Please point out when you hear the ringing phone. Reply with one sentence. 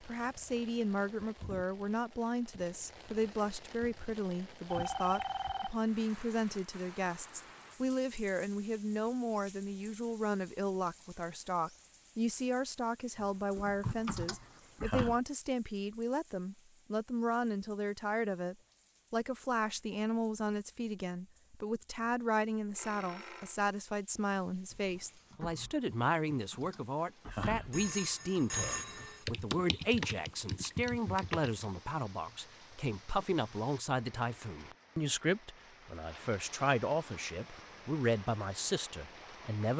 The ringing phone can be heard from 4.7 to 5.8 s, from 22.8 to 23.6 s and from 27.7 to 29.2 s.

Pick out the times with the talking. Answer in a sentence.
The talking can be heard from 0.1 to 39.7 s.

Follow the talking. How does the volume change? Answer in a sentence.
The loudness of the talking stays about the same.